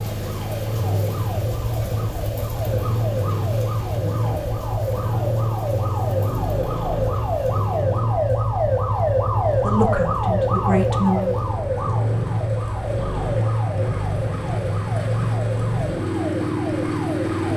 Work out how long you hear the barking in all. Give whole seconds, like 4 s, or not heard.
not heard.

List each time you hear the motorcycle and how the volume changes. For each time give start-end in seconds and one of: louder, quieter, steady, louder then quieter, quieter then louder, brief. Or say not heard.
0.0-17.5 steady.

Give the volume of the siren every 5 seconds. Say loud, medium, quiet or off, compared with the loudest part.
medium, loud, loud, medium.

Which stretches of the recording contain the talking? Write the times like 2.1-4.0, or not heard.
9.5-11.3.